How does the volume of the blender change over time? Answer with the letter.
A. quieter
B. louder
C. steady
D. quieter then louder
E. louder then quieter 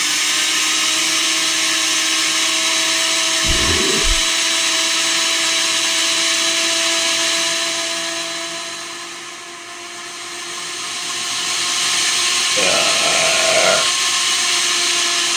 D.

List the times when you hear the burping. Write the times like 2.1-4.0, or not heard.
3.4-4.2, 12.6-13.9.